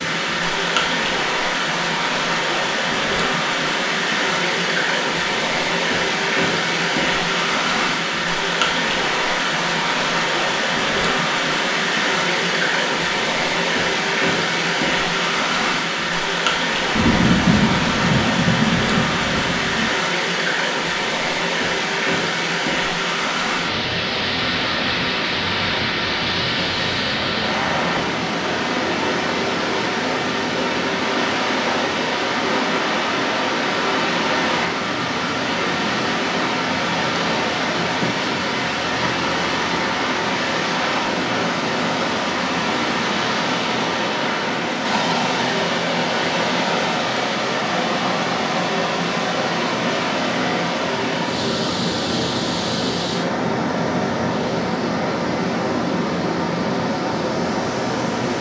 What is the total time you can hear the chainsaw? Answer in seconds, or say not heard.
not heard.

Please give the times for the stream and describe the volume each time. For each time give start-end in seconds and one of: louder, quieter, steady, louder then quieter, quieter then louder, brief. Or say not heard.
0.0-58.3 steady.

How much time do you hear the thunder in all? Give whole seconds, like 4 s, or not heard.
3 s.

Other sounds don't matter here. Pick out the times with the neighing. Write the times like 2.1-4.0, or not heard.
not heard.